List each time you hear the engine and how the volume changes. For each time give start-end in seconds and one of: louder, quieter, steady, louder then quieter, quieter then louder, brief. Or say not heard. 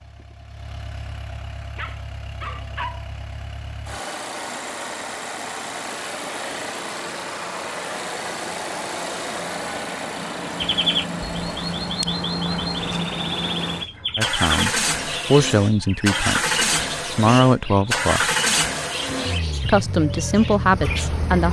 0.0-21.4 louder.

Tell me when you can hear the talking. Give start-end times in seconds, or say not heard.
14.2-18.2, 19.6-21.4.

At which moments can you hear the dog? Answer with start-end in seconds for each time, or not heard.
1.8-3.0.